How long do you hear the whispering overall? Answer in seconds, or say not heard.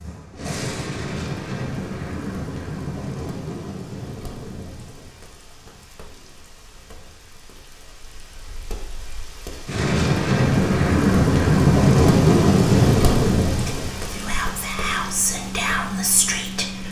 3 s.